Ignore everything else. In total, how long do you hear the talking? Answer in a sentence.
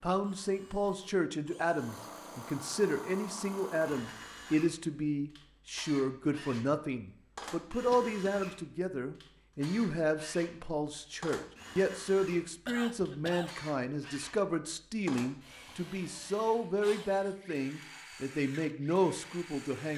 You can hear the talking for 20 seconds altogether.